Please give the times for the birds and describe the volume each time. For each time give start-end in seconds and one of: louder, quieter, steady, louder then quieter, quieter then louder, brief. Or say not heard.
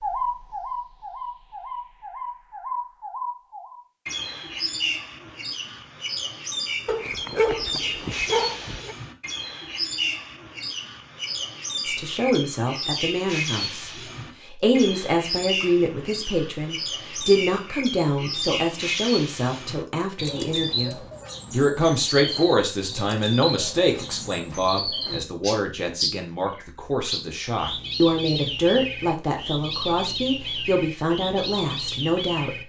0.0-32.6 steady.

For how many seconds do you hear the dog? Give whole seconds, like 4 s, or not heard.
2 s.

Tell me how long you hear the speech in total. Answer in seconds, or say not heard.
21 s.